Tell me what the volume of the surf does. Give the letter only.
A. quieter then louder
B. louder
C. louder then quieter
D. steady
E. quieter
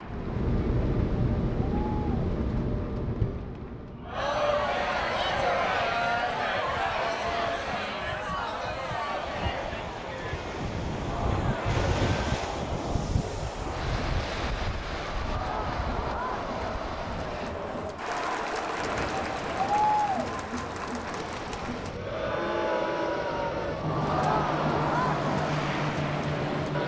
C.